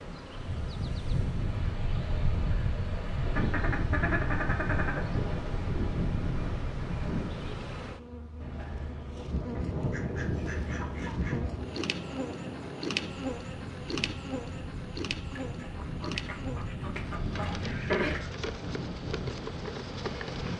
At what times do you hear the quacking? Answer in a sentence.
The quacking can be heard from 3.1 to 5.0 s, from 9.5 to 11.4 s and from 15.3 to 18.3 s.